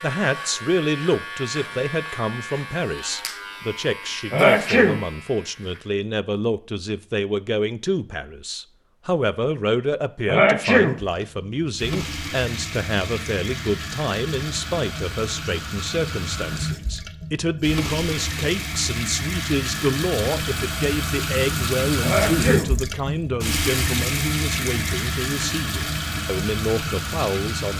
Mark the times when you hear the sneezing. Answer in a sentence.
The sneezing can be heard from 4.3 to 5.0 s, from 10.2 to 10.9 s and from 22.0 to 22.7 s.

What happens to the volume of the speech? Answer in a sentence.
The loudness of the speech stays about the same.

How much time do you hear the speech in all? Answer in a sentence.
The speech can be heard for 28 seconds in total.